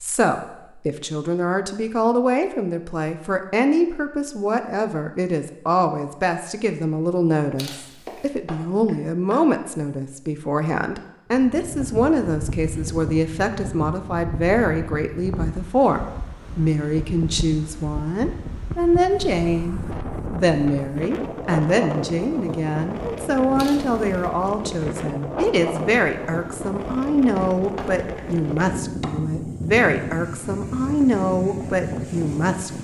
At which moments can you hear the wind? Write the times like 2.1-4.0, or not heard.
11.3-32.7.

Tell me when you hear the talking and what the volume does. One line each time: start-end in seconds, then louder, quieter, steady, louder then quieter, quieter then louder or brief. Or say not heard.
0.0-32.7 steady.